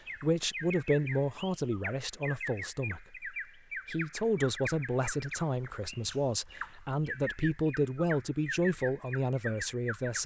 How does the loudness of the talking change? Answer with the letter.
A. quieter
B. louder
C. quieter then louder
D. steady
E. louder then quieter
D.